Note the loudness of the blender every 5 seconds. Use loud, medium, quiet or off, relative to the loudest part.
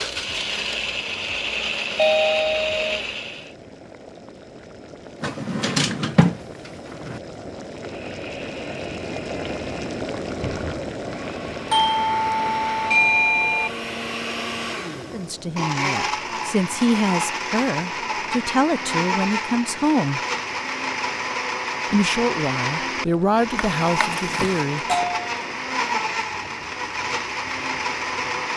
loud, quiet, medium, loud, loud, loud.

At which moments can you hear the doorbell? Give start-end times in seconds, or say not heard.
1.9-3.0, 11.7-13.7, 24.1-25.5.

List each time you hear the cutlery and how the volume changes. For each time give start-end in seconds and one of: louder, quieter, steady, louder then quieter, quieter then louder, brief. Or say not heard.
not heard.